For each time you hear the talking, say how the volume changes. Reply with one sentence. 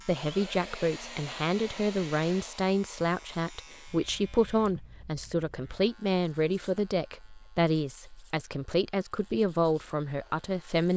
The talking can be heard from 0.1 to 10.9 s, at a steady volume.